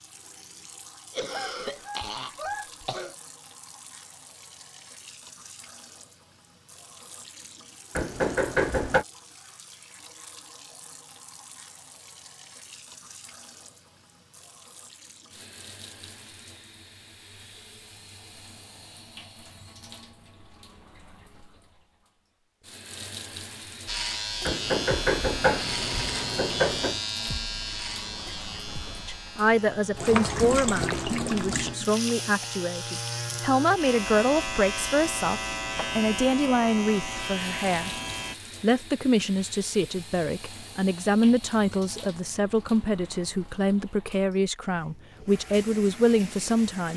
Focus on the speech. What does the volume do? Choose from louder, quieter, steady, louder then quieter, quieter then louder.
steady.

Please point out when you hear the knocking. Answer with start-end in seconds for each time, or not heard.
8.0-9.1, 24.4-27.0.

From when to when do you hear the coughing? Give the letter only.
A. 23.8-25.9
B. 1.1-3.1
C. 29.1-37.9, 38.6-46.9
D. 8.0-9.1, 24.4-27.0
B.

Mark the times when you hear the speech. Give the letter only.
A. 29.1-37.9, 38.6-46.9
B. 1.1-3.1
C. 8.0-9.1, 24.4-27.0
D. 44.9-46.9
A.